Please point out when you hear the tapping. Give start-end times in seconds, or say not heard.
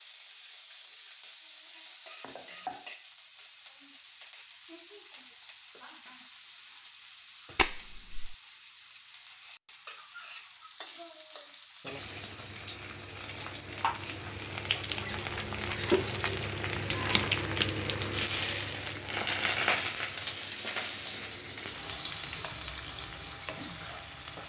7.5-8.3.